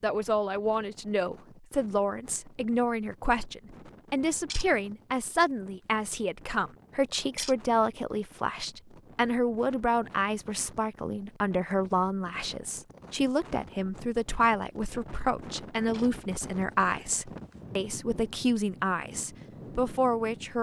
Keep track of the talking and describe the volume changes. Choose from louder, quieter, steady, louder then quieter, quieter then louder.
steady.